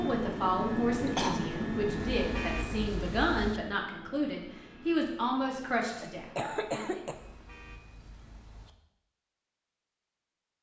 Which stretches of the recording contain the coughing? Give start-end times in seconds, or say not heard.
0.9-1.5, 6.0-7.2.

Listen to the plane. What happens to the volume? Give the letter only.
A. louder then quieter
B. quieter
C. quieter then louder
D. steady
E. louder
B.